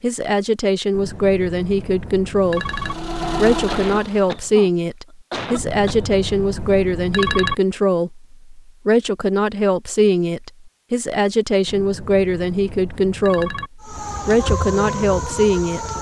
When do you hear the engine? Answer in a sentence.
The engine can be heard from 2.4 to 4.5 s.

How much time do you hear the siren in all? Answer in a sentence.
The siren can be heard for 2 seconds in total.